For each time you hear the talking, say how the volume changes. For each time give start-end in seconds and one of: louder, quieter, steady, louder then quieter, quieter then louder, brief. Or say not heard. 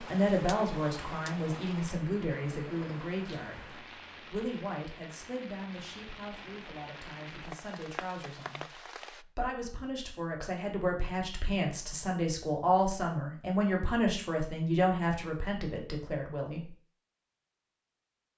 0.0-16.8 quieter then louder.